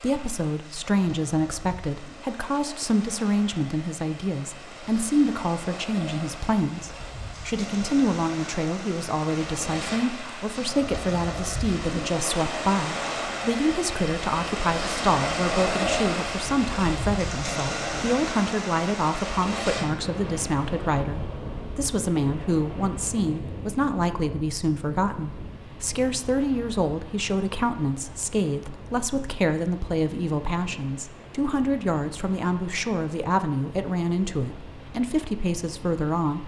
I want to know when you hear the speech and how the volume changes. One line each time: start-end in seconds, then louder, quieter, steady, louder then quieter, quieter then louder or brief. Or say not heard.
0.0-36.4 steady.